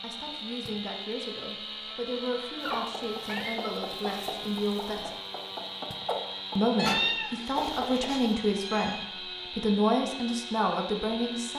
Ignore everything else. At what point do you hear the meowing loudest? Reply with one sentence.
The loudest moment of the meowing is at 7 seconds.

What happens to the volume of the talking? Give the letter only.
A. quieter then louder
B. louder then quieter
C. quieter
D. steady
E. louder
E.